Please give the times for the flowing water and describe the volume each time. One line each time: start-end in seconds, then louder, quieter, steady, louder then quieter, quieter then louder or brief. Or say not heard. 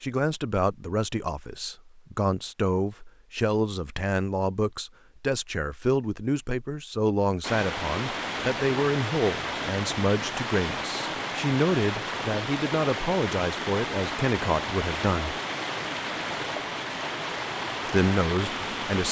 7.4-19.0 steady.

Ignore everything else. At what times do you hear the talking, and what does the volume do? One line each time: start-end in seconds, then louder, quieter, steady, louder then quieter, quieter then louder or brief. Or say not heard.
0.0-15.3 steady
17.9-19.0 brief.